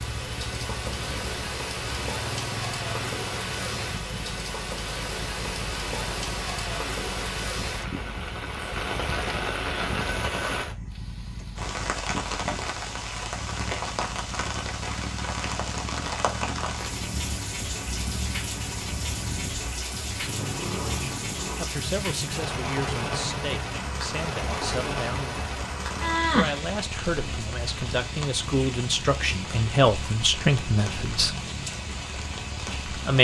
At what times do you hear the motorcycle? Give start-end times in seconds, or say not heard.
0.0-33.1.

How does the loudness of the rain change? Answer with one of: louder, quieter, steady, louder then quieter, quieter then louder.
steady.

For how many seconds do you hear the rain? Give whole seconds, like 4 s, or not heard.
33 s.